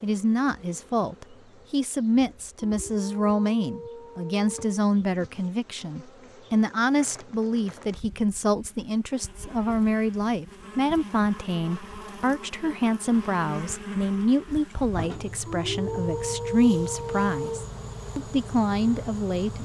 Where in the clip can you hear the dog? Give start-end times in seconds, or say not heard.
2.5-4.8, 15.4-17.6.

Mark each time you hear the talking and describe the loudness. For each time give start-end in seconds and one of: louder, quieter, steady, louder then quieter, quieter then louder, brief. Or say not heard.
0.0-19.6 steady.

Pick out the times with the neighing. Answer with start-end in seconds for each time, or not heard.
not heard.